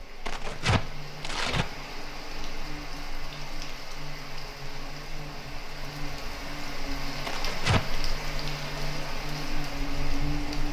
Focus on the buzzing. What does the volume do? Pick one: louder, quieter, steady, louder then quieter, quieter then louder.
louder.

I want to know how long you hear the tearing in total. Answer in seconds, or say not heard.
2 s.